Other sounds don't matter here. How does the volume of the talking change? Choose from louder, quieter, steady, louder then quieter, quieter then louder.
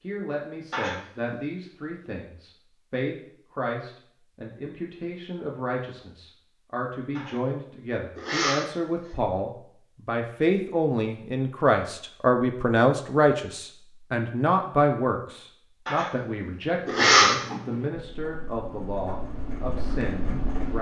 louder then quieter.